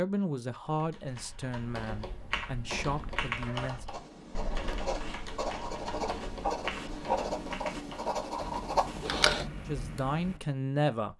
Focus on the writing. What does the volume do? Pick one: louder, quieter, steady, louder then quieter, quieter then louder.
louder.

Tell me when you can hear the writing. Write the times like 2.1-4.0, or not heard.
3.4-9.5.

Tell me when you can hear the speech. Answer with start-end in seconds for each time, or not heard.
0.0-3.9, 9.7-11.1.